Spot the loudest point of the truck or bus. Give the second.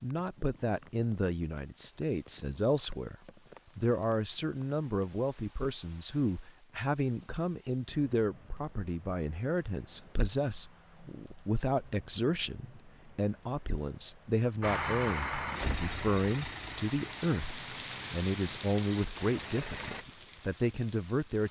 15 s.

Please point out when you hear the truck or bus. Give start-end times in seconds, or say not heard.
14.6-20.1.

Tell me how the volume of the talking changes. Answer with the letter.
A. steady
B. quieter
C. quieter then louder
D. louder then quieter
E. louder
A.